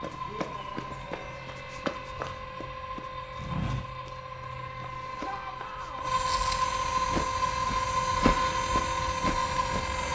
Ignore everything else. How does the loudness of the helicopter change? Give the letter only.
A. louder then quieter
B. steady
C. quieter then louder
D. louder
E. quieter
D.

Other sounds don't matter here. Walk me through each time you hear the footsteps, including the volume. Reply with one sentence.
The footsteps can be heard from 0.0 to 10.0 s, getting quieter then louder.